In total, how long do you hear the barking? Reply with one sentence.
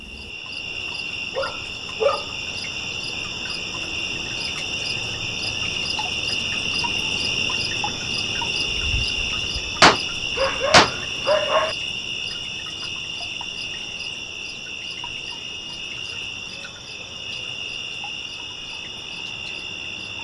You can hear the barking for 2 seconds altogether.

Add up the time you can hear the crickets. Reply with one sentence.
You can hear the crickets for 20 seconds altogether.